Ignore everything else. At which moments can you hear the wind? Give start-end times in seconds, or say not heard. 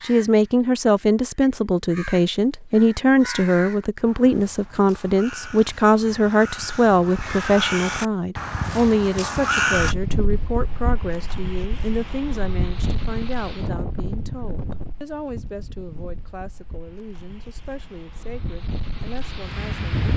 9.8-20.1.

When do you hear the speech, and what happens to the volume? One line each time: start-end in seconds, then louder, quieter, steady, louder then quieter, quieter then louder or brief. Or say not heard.
0.0-19.9 quieter.